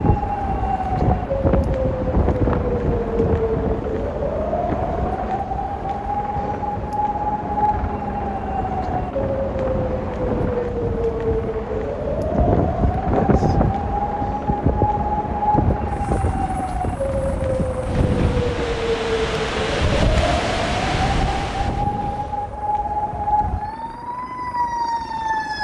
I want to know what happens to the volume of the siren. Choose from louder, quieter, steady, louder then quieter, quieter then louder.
steady.